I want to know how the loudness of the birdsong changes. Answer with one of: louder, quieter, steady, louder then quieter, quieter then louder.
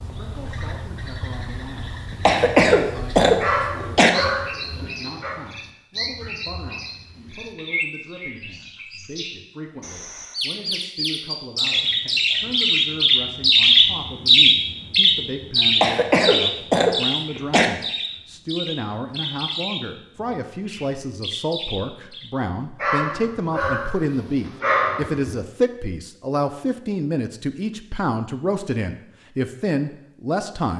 louder then quieter.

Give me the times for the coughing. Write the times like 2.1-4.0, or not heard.
2.2-4.1, 15.8-17.7.